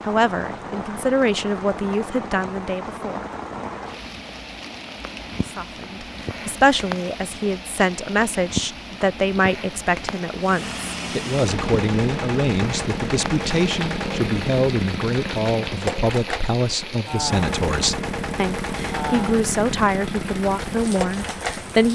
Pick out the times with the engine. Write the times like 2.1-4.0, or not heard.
10.4-21.8.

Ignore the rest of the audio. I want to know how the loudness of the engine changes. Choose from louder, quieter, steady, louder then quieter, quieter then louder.
steady.